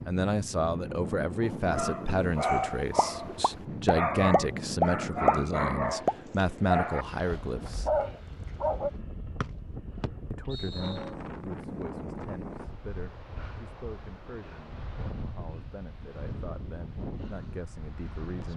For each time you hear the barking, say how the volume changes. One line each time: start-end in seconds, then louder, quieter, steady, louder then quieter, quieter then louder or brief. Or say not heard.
1.4-8.9 steady.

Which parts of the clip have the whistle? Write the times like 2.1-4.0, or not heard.
9.4-11.0.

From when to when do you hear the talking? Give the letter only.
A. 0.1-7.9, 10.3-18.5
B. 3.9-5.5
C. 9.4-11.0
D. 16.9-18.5
A.